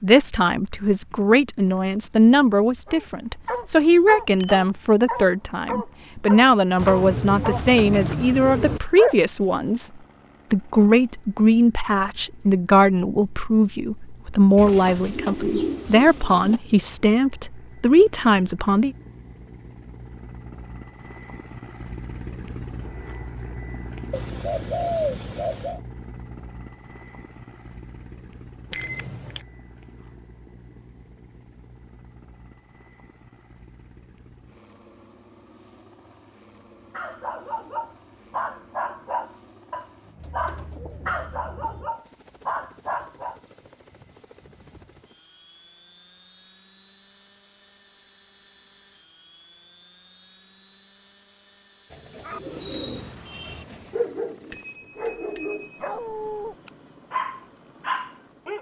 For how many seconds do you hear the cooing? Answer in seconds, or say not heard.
10 s.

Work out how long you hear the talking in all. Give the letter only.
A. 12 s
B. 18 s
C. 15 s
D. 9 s
B.